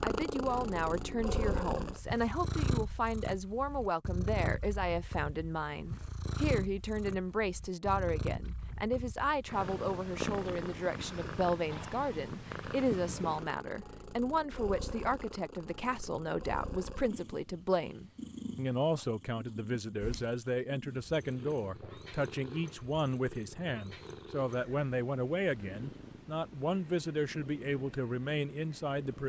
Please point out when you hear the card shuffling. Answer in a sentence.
You can't hear the card shuffling here.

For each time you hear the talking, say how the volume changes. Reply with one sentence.
The talking can be heard from 0.0 to 29.2 s, at a steady volume.